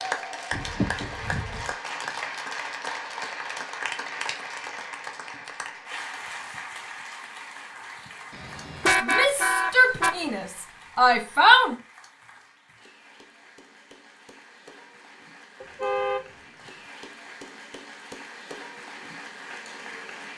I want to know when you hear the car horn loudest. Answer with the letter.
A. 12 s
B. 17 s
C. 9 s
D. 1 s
C.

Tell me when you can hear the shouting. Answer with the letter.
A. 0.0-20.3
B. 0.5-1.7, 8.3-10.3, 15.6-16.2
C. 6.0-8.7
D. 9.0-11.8
D.